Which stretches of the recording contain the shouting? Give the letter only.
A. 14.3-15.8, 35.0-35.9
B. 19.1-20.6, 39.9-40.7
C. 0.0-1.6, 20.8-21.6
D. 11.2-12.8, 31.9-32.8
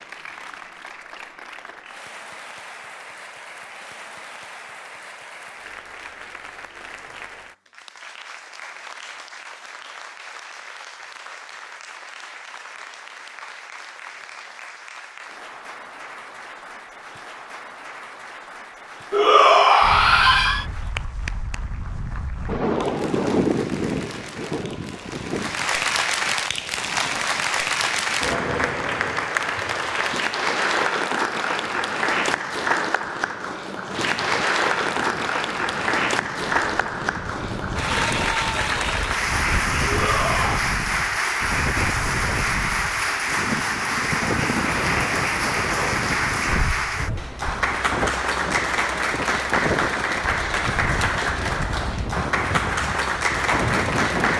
B.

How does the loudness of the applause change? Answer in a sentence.
The loudness of the applause goes up.